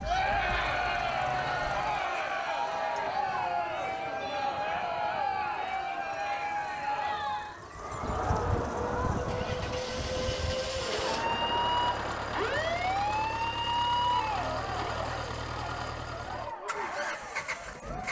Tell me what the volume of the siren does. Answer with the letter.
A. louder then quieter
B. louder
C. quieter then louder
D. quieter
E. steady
B.